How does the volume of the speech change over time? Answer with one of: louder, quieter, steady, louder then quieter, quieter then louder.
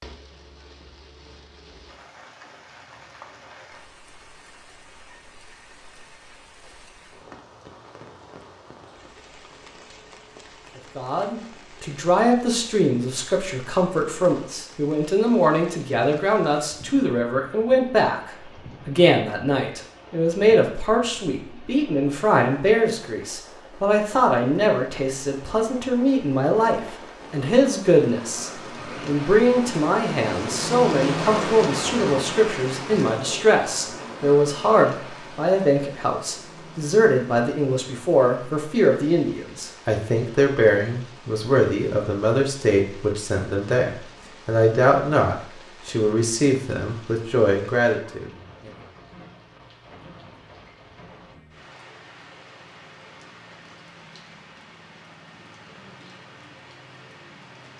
steady.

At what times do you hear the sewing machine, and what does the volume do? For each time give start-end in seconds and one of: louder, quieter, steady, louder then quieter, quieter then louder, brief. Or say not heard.
not heard.